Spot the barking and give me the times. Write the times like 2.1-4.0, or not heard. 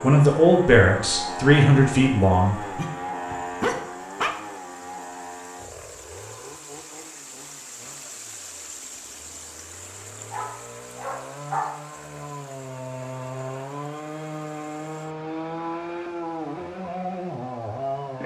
2.8-4.3, 10.3-11.8.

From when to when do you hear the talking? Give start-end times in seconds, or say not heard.
0.0-2.5.